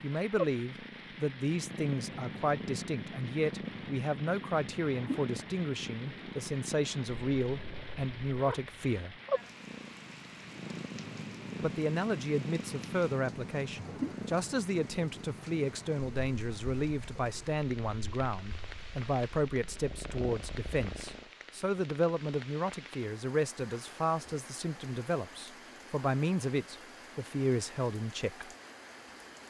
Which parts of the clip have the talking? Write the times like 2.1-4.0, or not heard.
0.0-9.2, 11.6-28.5.